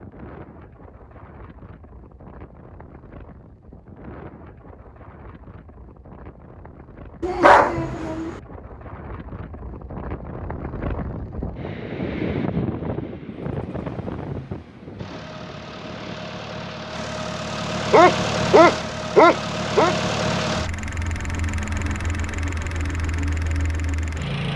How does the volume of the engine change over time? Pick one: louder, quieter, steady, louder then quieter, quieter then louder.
louder then quieter.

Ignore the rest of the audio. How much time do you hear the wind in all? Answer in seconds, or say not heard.
16 s.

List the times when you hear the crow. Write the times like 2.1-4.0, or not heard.
not heard.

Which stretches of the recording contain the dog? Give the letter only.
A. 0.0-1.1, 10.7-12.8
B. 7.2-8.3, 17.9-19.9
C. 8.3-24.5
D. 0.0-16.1
B.